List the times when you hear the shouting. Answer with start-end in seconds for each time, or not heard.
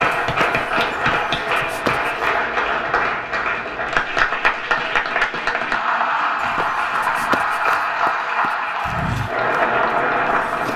not heard.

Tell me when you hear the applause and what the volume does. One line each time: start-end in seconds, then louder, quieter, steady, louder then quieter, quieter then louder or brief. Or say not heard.
0.0-10.7 steady.